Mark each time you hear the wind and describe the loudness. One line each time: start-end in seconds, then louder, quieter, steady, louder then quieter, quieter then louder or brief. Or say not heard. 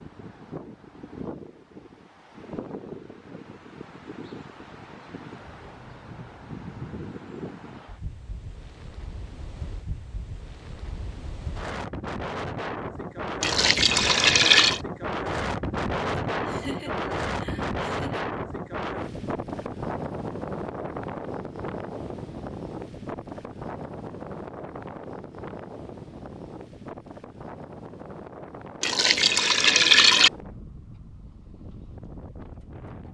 0.0-33.1 louder then quieter.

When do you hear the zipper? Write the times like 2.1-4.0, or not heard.
not heard.